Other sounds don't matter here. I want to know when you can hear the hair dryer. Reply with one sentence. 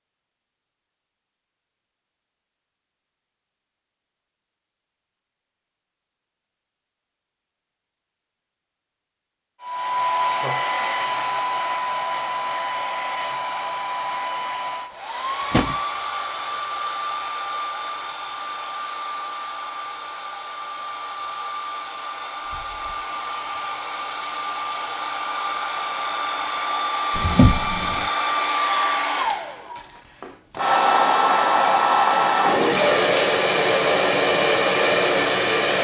You can hear the hair dryer from 9.6 to 35.7 s.